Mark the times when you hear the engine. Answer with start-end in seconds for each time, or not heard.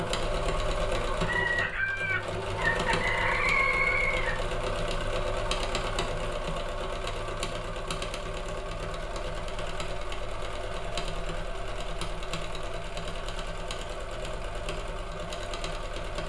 0.0-16.2.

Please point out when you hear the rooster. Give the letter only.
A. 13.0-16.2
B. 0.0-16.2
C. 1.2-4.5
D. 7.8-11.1
C.